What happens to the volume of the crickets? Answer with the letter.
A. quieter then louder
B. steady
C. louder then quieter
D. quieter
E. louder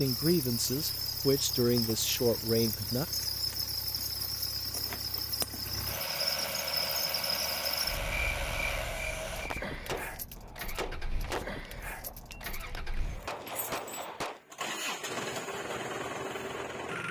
B.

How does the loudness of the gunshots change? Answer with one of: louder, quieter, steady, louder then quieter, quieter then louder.
quieter then louder.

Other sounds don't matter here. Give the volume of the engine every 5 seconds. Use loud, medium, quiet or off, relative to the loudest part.
quiet, loud, medium, loud.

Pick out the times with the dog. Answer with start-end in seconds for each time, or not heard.
not heard.